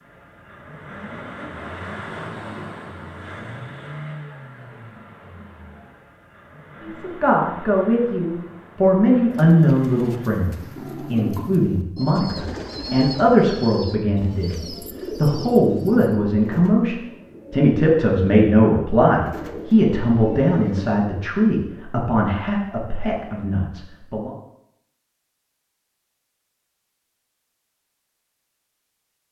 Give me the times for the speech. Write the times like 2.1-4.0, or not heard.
6.8-24.3.